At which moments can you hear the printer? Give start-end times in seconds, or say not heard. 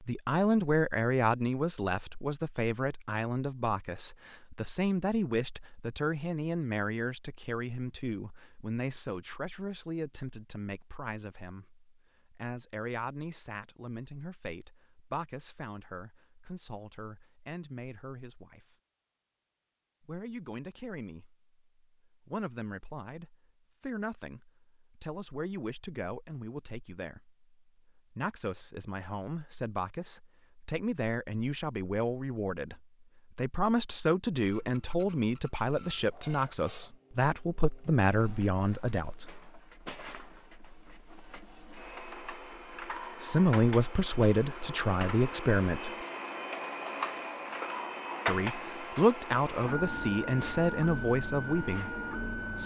34.5-52.6.